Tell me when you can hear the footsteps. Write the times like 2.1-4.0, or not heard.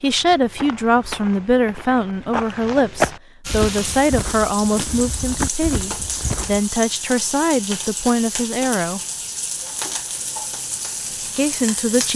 0.0-6.7.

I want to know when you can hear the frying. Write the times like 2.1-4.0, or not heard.
3.5-12.1.